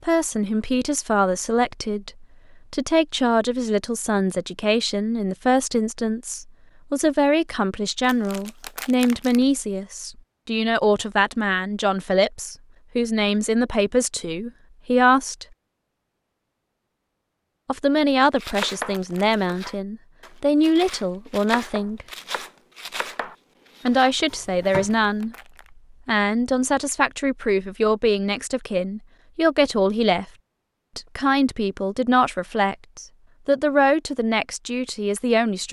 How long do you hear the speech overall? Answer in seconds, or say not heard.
30 s.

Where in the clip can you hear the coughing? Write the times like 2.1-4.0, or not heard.
not heard.